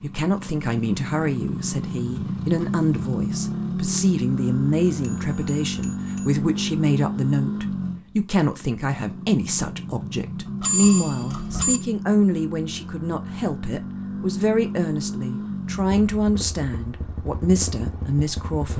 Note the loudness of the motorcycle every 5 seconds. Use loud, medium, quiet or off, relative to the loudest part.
loud, loud, loud, medium.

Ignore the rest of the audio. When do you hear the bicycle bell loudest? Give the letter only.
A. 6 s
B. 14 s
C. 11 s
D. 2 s
C.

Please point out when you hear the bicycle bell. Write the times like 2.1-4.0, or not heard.
5.0-6.3, 10.6-11.8.